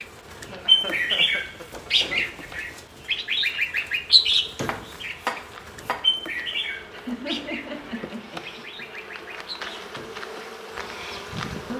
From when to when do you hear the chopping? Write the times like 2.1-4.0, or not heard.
4.2-6.1.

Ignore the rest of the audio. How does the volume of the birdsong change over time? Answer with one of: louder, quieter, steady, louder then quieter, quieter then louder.
quieter.